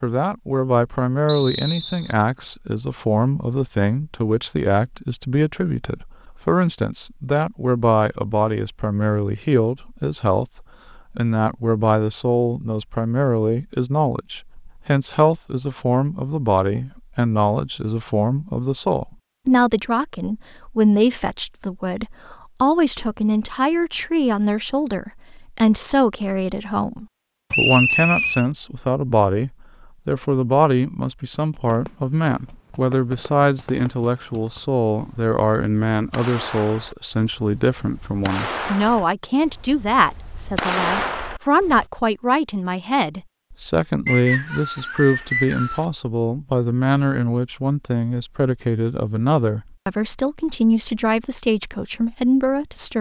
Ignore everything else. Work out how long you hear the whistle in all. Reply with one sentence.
You can hear the whistle for 4 seconds altogether.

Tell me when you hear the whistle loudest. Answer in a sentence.
The volume of the whistle peaks at 28 seconds.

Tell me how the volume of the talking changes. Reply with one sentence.
The volume of the talking stays about the same.